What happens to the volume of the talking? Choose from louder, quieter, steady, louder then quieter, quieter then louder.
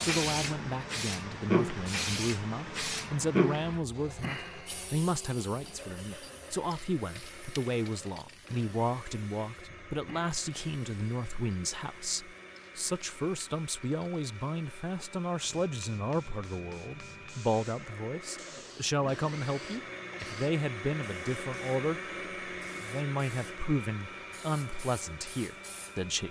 steady.